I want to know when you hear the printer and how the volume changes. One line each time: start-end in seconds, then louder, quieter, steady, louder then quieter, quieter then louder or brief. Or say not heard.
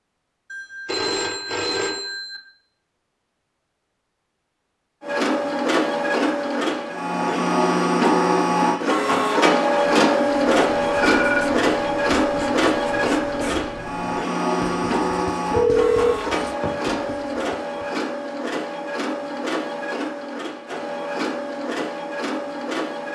5.0-23.1 quieter.